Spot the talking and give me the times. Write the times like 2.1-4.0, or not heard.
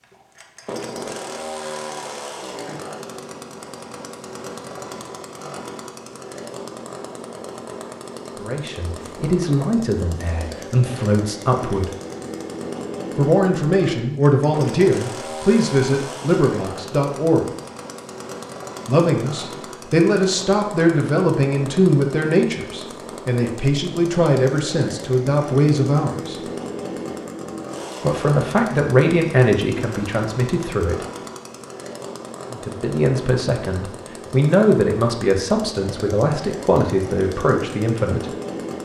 8.3-11.9, 13.2-17.4, 18.9-26.5, 28.0-31.1, 32.5-38.3.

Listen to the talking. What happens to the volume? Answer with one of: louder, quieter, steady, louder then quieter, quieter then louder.
steady.